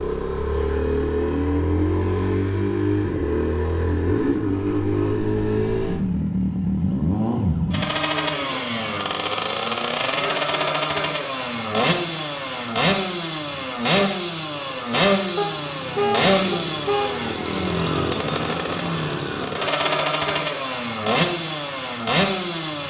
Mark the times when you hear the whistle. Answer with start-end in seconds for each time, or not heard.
not heard.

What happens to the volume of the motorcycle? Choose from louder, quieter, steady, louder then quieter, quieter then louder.
steady.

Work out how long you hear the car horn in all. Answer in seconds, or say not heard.
2 s.